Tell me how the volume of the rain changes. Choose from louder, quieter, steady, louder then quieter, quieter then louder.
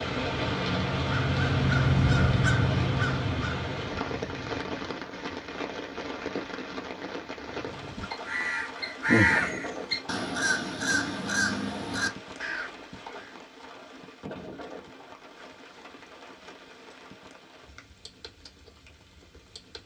quieter.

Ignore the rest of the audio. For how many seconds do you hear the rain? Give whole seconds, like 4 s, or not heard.
20 s.